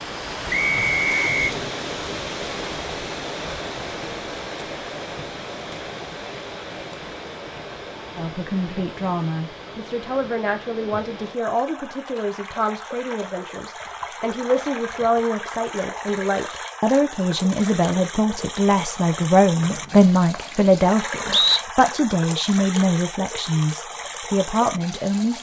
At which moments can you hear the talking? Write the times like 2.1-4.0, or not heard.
8.2-25.3.